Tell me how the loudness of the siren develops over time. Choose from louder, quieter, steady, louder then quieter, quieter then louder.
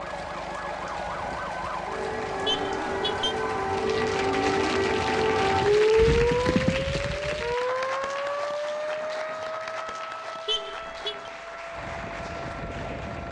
louder then quieter.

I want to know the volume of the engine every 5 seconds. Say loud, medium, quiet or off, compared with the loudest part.
loud, off, loud.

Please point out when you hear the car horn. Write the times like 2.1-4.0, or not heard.
2.5-3.4, 10.4-11.3.